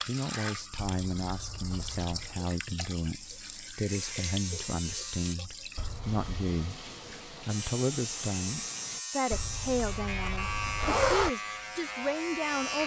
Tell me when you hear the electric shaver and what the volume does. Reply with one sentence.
You can hear the electric shaver briefly from 3.1 to 5.3 s; and from 7.5 to 12.8 s, at a steady volume.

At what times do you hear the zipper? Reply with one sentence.
The zipper can be heard from 0.8 to 2.4 s, from 5.8 to 6.5 s and from 9.3 to 11.3 s.